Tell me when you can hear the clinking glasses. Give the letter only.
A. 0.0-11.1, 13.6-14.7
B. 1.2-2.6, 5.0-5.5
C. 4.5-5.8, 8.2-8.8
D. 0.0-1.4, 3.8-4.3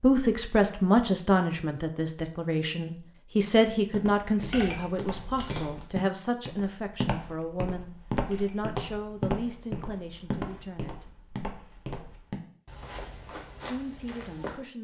C.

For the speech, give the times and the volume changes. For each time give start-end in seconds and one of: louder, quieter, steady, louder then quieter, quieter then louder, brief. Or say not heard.
0.0-11.1 quieter
13.6-14.7 brief.